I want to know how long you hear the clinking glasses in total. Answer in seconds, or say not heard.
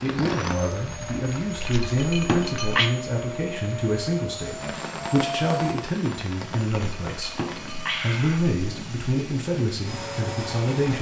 3 s.